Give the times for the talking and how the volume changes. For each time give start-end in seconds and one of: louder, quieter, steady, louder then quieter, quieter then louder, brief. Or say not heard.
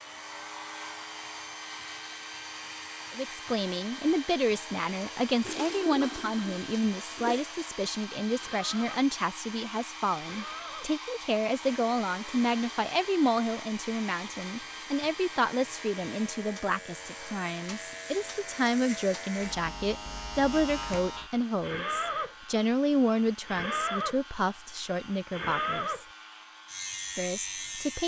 3.1-26.1 steady
27.1-28.0 brief.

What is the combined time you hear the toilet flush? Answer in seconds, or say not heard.
2 s.